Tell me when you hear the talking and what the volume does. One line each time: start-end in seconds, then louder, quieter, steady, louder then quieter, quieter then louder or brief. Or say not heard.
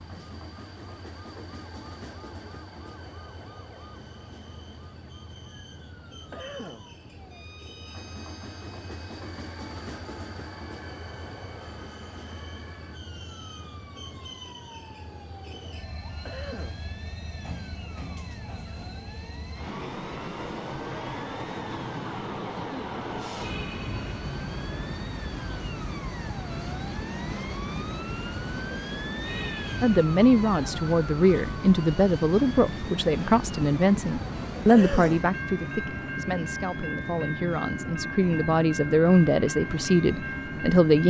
29.8-41.0 quieter then louder.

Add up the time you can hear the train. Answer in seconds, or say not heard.
41 s.